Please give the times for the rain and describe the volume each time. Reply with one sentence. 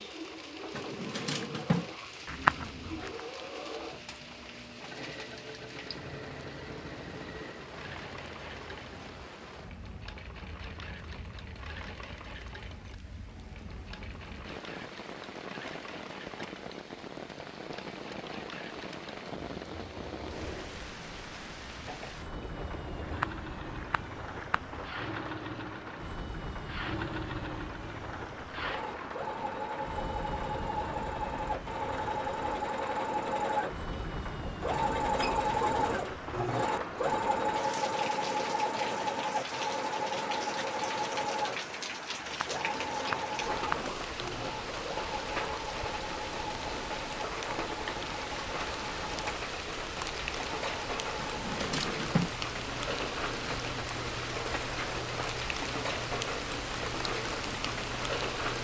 You can hear the rain from 0.0 to 58.5 s, getting louder.